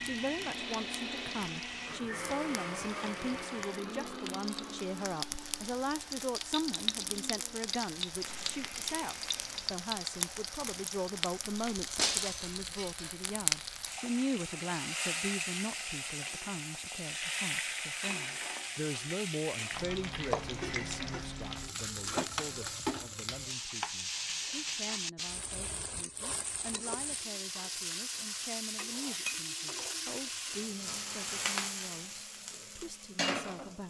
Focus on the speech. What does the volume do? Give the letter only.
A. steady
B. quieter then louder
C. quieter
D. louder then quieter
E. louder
C.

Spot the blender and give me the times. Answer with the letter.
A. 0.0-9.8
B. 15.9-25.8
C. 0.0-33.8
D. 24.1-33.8
A.